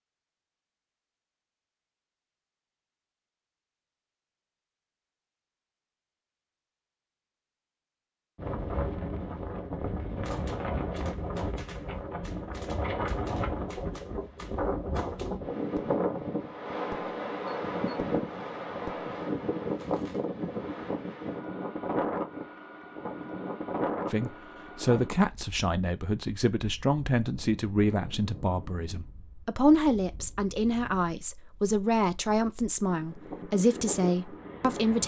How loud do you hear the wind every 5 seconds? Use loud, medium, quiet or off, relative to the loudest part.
off, loud, loud, loud, loud, quiet, medium.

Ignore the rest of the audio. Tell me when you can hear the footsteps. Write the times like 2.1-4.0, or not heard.
not heard.